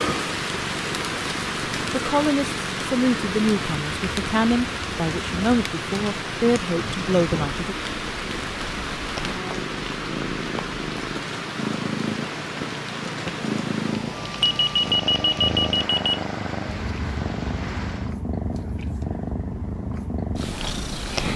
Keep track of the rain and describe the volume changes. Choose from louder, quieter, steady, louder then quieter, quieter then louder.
quieter.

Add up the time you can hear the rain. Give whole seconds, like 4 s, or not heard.
18 s.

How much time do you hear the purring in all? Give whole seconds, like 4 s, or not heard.
21 s.